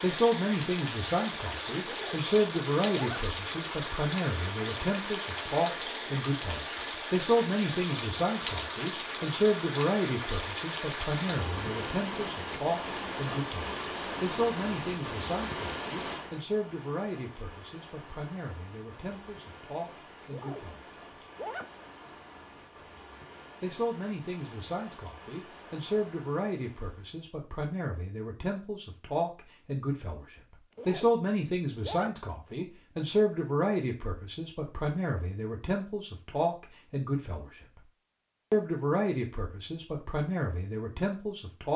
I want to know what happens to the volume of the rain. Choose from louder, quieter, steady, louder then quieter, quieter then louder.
quieter.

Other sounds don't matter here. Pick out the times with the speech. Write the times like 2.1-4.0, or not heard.
0.0-20.9, 23.6-37.9, 38.5-41.7.